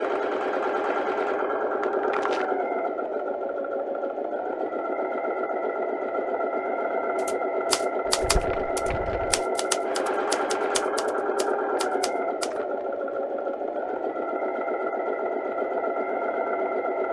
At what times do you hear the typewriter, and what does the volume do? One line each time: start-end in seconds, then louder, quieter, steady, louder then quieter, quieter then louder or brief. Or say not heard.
7.2-12.5 quieter.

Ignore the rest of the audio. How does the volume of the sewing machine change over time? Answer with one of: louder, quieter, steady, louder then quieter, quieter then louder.
steady.